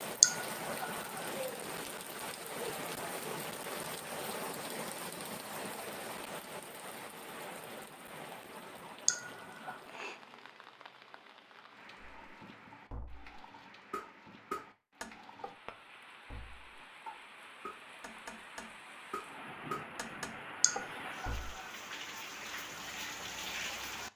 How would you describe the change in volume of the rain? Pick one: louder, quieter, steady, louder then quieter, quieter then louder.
quieter then louder.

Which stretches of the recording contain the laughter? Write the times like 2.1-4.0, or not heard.
0.2-0.9, 9.1-9.8, 20.6-21.3.